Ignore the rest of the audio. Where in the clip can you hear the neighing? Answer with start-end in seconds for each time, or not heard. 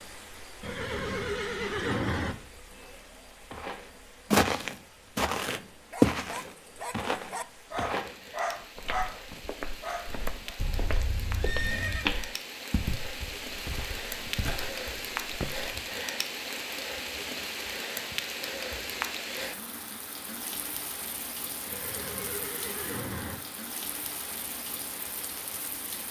0.6-2.4, 10.6-12.2, 21.6-23.4.